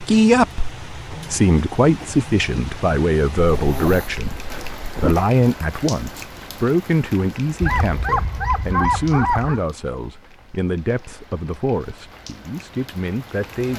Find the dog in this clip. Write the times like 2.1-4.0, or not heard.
3.4-5.2, 7.6-9.6.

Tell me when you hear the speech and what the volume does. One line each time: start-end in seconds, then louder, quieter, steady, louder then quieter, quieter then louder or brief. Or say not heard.
0.0-13.7 quieter.